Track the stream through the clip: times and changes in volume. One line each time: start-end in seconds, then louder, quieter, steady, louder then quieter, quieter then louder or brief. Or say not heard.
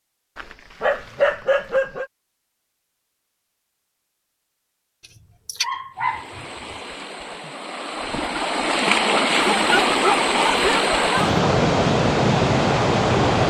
6.0-13.4 louder.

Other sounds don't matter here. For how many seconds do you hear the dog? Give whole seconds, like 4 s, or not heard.
5 s.